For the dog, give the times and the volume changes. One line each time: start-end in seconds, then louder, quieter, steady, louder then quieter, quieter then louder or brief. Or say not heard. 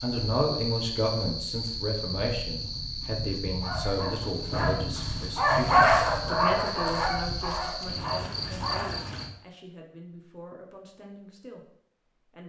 3.6-9.1 louder then quieter.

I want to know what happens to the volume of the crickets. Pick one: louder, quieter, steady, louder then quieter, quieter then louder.
steady.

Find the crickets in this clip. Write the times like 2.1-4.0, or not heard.
0.0-9.3.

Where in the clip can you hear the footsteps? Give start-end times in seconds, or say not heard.
not heard.